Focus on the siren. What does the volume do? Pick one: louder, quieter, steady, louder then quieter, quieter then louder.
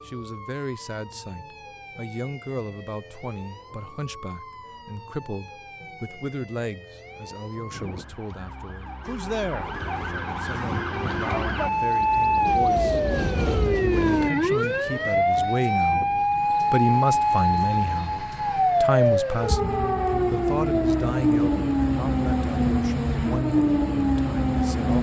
louder.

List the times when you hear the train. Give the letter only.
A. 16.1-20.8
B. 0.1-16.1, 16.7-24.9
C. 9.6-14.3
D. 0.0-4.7
C.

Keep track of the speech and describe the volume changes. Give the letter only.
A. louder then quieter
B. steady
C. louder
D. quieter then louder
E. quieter
A.